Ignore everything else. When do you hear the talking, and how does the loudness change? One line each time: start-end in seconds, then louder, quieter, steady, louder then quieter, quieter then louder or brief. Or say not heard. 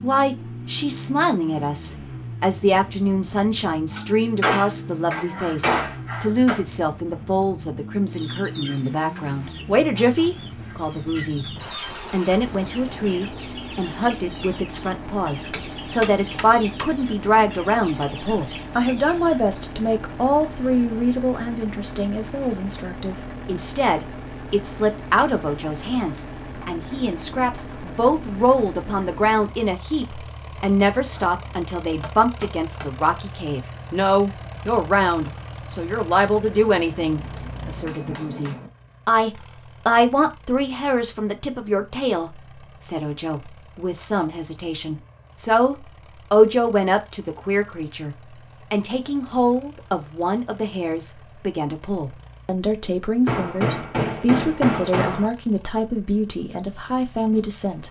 0.0-57.8 steady.